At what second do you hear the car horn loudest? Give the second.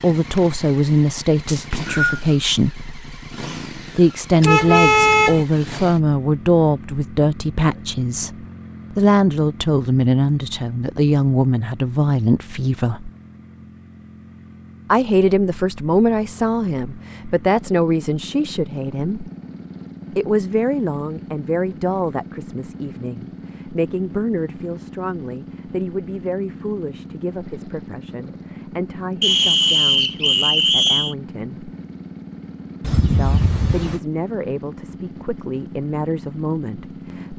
5 s.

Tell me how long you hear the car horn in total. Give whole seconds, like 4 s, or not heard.
2 s.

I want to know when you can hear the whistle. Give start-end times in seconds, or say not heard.
1.4-2.2, 29.2-31.1.